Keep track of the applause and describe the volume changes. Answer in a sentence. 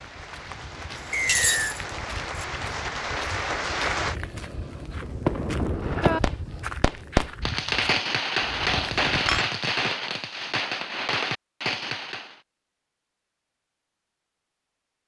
The volume of the applause goes up.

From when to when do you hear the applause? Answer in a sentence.
The applause can be heard from 0.0 to 4.2 s.